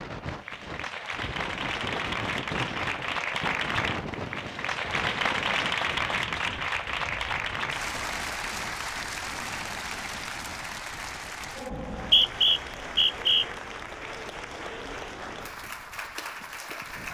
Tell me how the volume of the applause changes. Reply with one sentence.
The volume of the applause goes down.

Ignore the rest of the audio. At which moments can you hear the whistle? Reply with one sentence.
You can hear the whistle from 11.7 to 13.4 s.